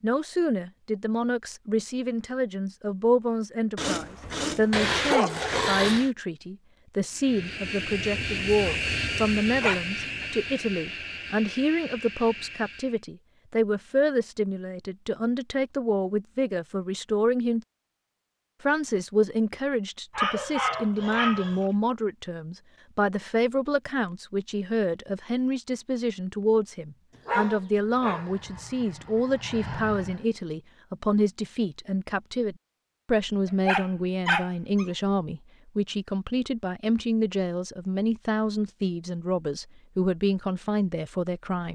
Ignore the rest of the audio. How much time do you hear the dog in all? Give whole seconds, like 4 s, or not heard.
8 s.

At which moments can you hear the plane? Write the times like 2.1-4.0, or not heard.
7.1-13.0, 27.7-30.2.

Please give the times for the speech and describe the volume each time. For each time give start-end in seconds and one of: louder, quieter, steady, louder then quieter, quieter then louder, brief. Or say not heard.
0.0-17.6 steady
18.6-41.7 steady.